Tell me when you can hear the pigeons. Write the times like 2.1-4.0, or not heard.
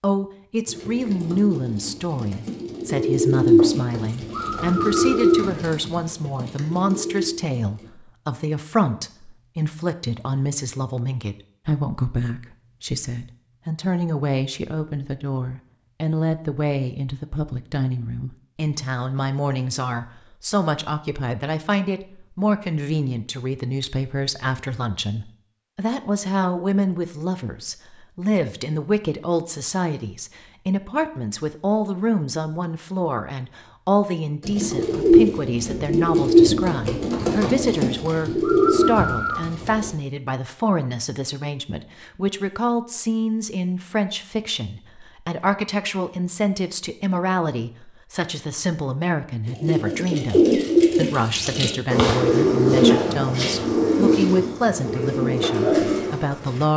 0.7-7.9, 34.4-40.0, 49.5-56.6.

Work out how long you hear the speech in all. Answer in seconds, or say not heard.
57 s.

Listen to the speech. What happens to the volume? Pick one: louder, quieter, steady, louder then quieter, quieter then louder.
steady.